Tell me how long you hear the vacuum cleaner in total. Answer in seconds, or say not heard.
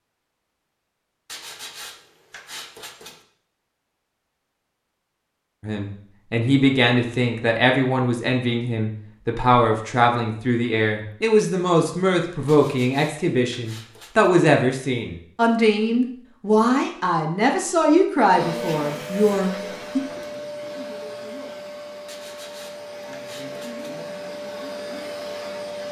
8 s.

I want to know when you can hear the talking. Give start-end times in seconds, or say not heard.
5.6-20.0.